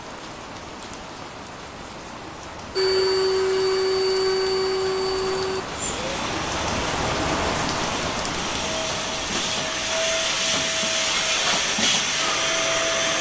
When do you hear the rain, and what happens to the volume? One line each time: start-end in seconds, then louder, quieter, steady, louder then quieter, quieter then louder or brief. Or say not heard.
0.0-13.1 louder then quieter.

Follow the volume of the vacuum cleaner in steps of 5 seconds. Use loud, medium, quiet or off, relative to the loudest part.
loud, medium, loud.